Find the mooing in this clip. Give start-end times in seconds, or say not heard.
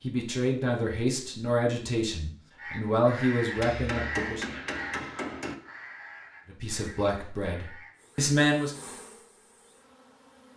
not heard.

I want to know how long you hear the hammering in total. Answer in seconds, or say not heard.
2 s.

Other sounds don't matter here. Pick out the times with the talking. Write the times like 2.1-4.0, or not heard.
0.0-4.5, 6.5-8.8.